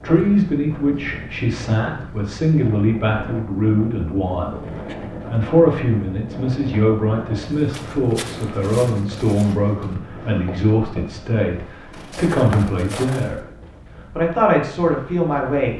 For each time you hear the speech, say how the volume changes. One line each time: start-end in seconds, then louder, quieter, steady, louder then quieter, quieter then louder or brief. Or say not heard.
0.0-13.4 steady
14.1-15.7 brief.